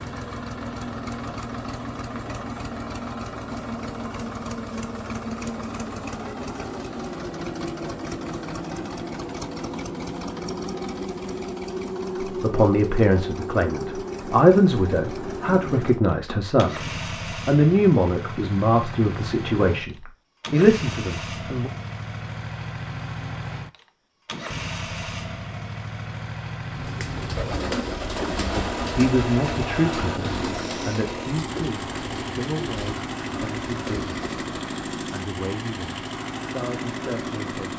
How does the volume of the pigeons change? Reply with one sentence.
The loudness of the pigeons goes down.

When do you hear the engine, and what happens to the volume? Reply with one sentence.
The engine can be heard from 0.0 to 37.7 s, at a steady volume.